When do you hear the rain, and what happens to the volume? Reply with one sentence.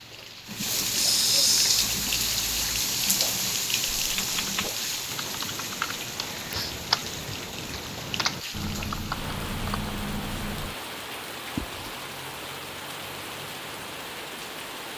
The rain can be heard from 0.0 to 14.9 s, getting quieter.